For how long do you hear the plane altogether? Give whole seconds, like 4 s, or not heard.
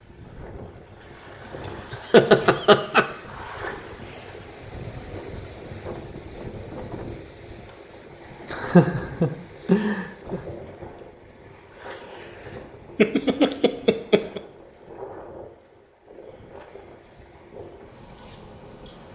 not heard.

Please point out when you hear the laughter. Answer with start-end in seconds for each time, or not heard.
1.9-3.0, 8.5-10.4, 12.9-14.4.